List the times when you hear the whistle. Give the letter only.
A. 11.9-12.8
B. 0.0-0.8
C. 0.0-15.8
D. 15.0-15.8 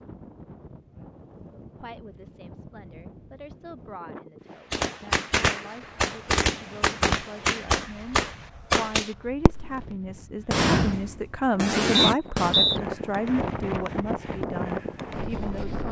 A.